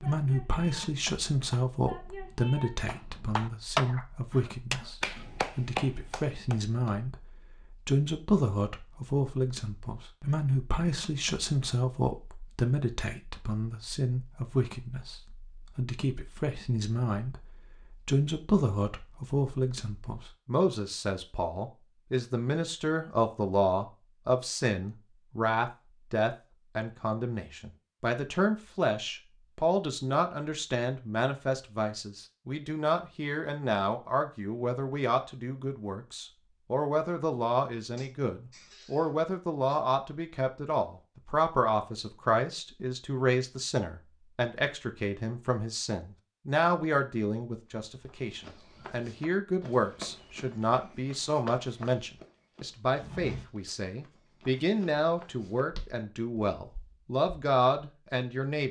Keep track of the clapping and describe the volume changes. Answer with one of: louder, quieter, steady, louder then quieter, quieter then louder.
louder.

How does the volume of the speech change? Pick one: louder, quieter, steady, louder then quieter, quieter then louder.
steady.